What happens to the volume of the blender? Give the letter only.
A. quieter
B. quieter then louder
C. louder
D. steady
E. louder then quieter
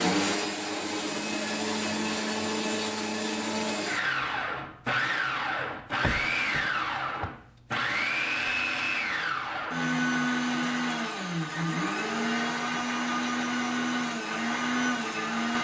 D.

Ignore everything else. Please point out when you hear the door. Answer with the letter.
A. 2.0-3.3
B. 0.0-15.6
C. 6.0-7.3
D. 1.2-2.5
C.